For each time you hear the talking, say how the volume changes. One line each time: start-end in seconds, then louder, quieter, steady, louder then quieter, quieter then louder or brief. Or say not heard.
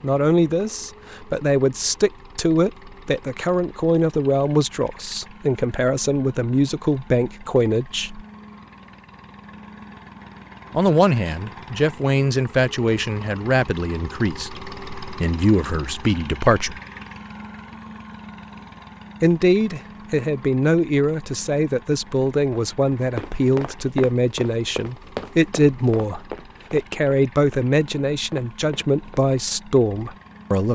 0.0-8.2 steady
10.7-16.8 quieter then louder
19.2-30.6 steady.